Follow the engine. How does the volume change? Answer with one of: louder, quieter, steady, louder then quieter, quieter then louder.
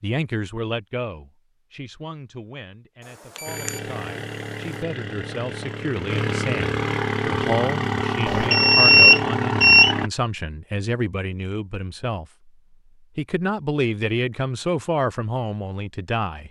louder.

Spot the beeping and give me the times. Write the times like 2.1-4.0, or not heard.
3.4-3.8, 8.2-9.9.